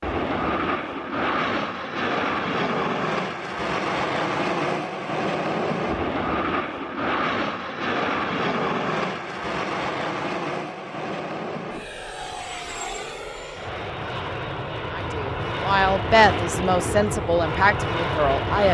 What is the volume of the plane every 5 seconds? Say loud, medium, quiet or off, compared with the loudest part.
loud, loud, medium, loud.